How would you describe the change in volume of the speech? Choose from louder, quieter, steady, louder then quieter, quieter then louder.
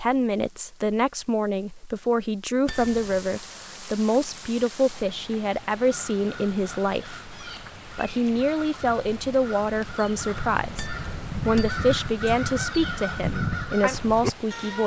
steady.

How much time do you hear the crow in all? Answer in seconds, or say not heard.
9 s.